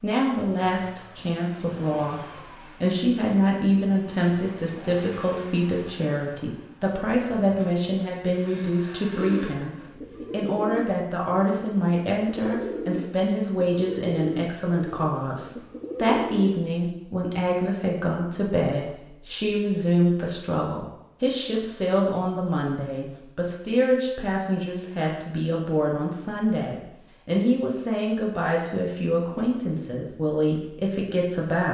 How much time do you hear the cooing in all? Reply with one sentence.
The cooing can be heard for 8 seconds in total.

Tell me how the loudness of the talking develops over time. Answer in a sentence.
The volume of the talking stays about the same.